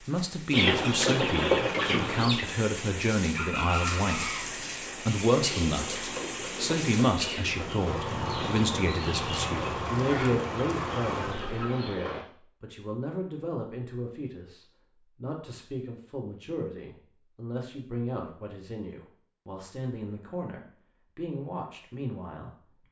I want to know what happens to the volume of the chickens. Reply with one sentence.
The volume of the chickens goes down.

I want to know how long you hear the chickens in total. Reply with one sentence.
You can hear the chickens for 12 seconds altogether.